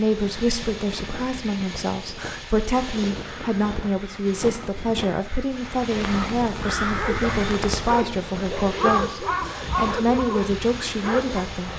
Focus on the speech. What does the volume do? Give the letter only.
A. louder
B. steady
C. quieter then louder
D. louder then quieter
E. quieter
B.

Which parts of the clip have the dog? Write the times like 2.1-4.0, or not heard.
6.8-11.7.